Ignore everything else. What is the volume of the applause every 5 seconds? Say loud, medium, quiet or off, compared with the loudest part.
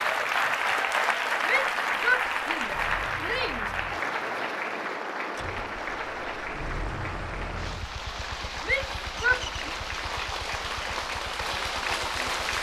loud, medium, loud.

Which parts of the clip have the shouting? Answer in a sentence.
You can hear the shouting from 1.4 to 4.0 s and from 8.6 to 9.4 s.